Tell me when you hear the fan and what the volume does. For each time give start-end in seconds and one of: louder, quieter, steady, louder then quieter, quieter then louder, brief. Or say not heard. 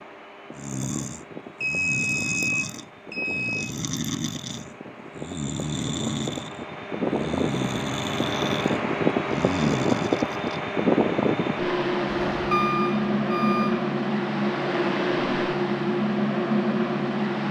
0.0-17.4 louder.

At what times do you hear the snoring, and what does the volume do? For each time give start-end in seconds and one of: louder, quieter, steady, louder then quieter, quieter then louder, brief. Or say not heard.
0.6-10.6 steady.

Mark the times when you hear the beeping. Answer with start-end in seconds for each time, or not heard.
1.6-3.7, 12.3-13.8.